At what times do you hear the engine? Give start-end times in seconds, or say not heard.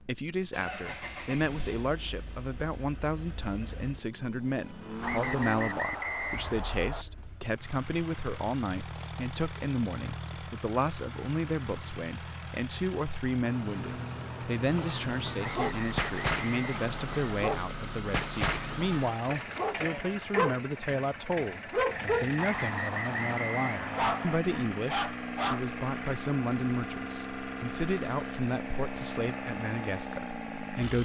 0.0-31.0.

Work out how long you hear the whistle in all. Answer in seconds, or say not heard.
6 s.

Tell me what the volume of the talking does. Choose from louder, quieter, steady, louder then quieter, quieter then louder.
steady.